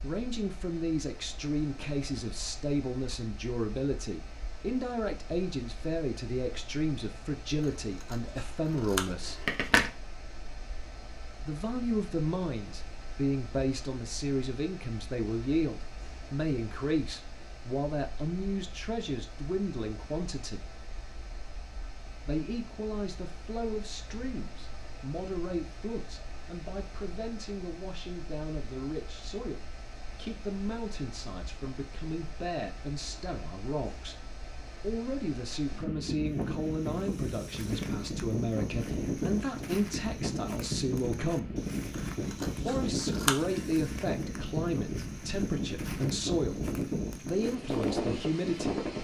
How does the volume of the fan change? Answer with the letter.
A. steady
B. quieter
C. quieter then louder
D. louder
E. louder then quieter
D.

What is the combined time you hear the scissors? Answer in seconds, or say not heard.
4 s.